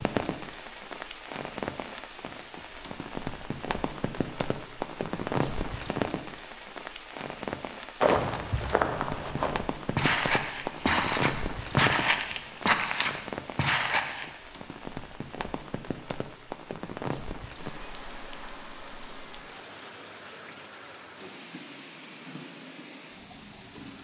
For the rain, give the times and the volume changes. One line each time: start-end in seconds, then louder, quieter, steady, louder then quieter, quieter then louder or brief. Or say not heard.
0.0-23.9 quieter.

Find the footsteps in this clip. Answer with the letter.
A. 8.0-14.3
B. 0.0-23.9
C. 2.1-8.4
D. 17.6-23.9
A.